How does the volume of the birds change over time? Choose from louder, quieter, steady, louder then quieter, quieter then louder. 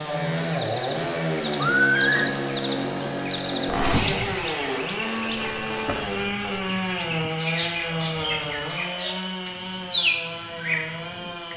quieter then louder.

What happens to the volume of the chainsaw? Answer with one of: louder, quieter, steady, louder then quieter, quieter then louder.
quieter.